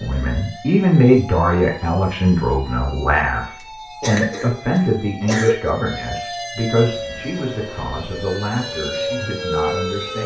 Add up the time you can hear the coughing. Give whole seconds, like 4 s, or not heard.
2 s.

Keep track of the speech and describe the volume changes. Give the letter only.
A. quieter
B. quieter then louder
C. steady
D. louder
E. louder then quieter
A.